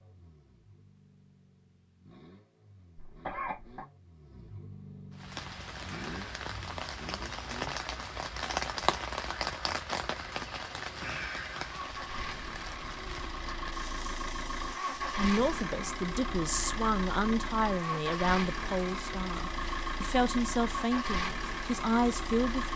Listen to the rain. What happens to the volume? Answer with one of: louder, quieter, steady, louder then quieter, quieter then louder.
quieter.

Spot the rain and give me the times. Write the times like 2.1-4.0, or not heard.
5.1-22.7.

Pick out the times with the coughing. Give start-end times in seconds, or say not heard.
3.0-3.9.